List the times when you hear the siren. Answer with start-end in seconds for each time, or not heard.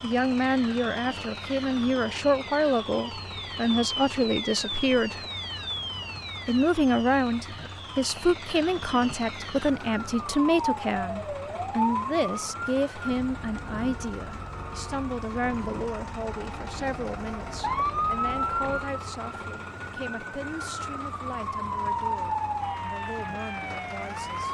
0.0-24.4.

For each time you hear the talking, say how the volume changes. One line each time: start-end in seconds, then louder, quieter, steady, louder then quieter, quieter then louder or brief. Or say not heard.
0.0-5.2 steady
6.5-24.4 quieter.